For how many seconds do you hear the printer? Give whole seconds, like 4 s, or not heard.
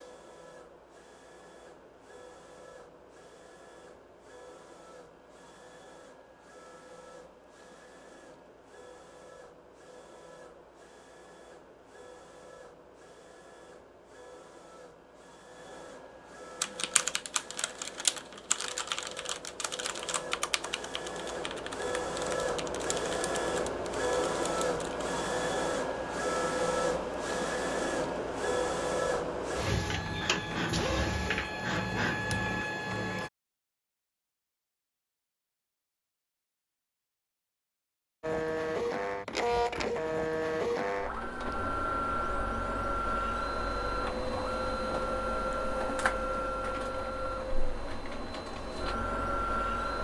45 s.